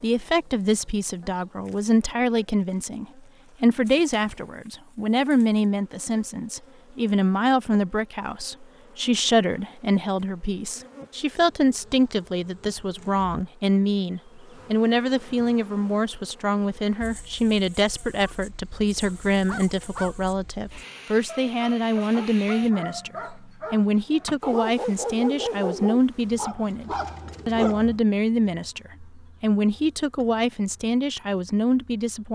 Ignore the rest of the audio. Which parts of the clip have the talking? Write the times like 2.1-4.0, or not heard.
0.0-32.3.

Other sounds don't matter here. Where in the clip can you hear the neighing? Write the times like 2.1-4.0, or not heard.
not heard.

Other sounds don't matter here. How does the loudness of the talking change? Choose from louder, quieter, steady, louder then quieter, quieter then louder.
steady.